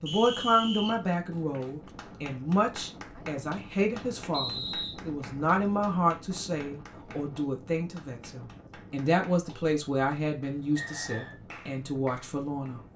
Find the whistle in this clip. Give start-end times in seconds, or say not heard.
0.1-1.0, 4.3-5.0, 10.8-11.3.